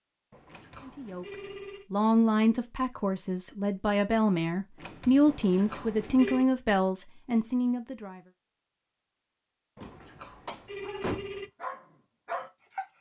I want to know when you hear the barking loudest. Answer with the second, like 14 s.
12 s.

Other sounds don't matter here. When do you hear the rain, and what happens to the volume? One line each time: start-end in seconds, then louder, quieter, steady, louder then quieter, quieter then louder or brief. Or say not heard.
not heard.